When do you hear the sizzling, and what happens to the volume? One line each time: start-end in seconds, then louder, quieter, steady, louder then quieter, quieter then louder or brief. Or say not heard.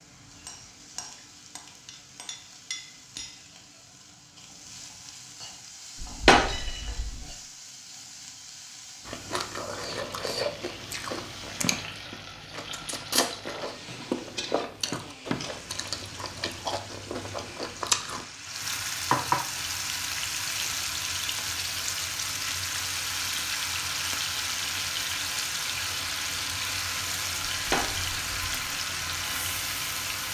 0.0-30.2 louder.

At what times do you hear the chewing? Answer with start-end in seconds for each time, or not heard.
9.1-18.2.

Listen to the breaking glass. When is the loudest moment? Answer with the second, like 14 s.
6 s.